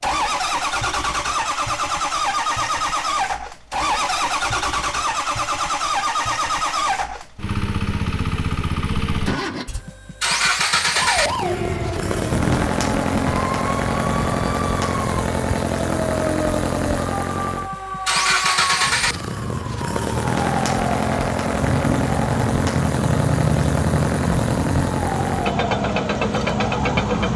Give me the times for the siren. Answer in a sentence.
You can hear the siren from 10.9 to 27.3 s.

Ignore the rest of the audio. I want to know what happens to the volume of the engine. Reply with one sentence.
The volume of the engine stays about the same.